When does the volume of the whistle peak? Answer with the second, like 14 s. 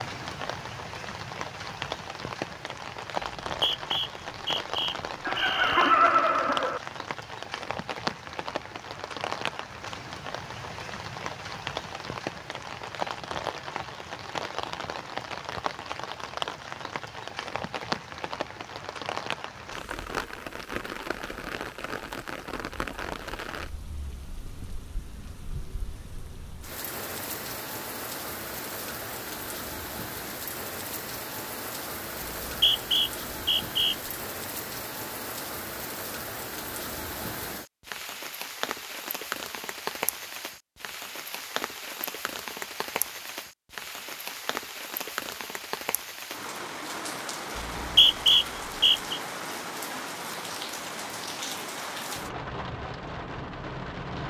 48 s.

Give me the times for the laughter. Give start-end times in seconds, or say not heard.
5.2-6.8.